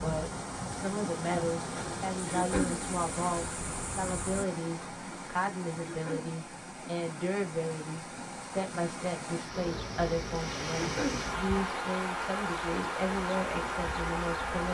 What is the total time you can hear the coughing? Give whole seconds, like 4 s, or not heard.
2 s.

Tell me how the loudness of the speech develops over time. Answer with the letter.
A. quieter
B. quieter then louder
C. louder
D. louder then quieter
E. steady
E.